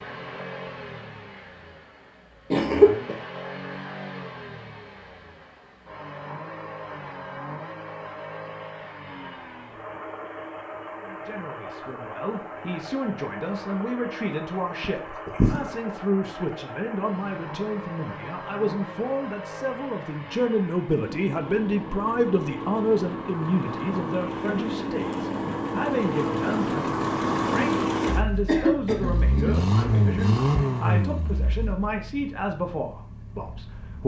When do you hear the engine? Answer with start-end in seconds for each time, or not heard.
0.0-34.0.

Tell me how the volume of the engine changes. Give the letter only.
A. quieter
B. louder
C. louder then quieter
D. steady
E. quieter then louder
B.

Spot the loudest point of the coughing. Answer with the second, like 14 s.
3 s.